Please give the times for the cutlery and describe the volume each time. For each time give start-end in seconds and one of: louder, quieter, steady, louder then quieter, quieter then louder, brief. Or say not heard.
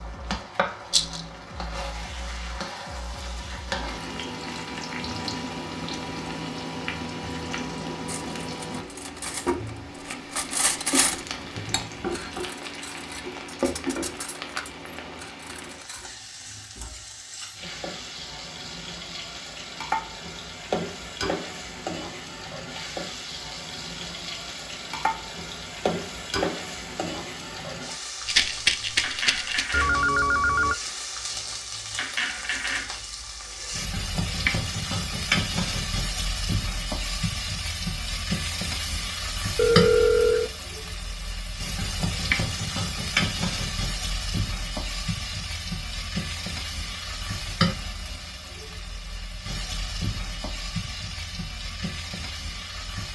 8.1-16.1 louder then quieter.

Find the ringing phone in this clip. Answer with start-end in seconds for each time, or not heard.
11.1-12.3, 29.7-30.8, 39.5-40.5.